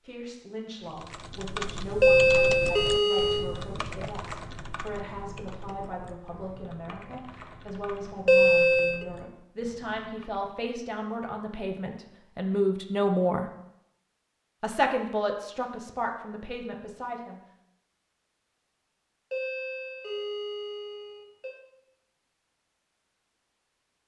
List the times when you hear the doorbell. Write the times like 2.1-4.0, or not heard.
2.0-3.5, 8.2-9.1, 19.3-21.6.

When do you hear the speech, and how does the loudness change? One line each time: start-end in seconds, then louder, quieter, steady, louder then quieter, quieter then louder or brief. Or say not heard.
0.0-13.5 louder
14.6-17.4 brief.